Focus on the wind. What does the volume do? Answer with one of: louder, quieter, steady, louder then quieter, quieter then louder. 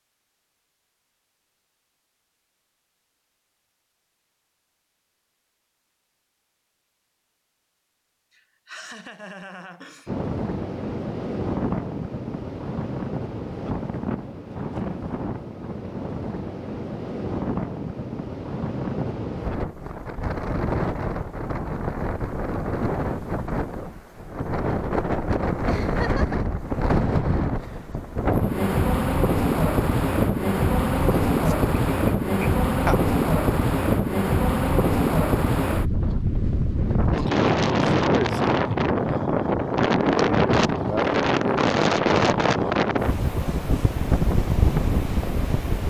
louder.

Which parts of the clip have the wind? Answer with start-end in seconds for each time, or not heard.
10.1-45.8.